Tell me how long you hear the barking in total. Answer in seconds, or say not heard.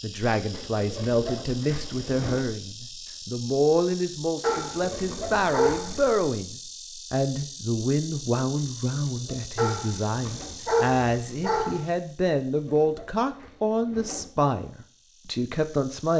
4 s.